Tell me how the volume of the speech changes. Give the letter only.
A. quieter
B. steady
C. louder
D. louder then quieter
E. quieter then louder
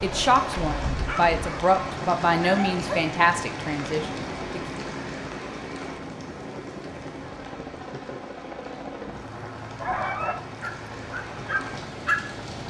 D.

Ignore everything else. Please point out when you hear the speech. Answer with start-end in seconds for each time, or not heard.
0.0-4.6.